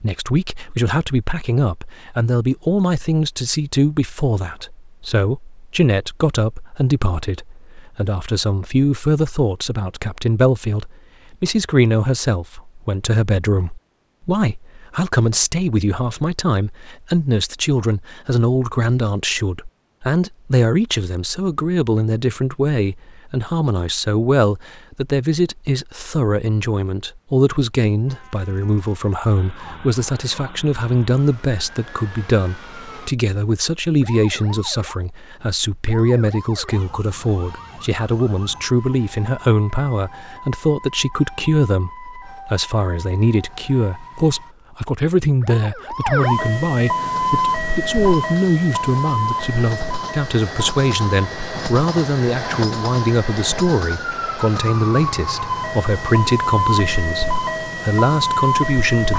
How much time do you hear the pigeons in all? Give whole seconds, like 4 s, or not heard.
not heard.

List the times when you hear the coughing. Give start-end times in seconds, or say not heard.
not heard.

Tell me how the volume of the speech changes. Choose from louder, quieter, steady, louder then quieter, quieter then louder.
steady.